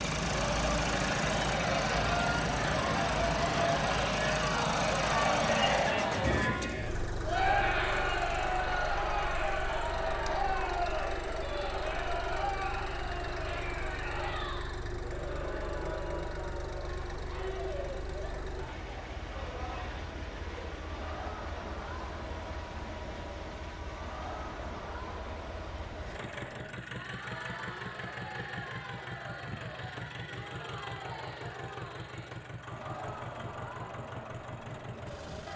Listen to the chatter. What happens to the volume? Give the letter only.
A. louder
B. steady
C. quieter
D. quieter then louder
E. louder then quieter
C.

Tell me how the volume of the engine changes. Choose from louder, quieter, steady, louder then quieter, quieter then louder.
quieter.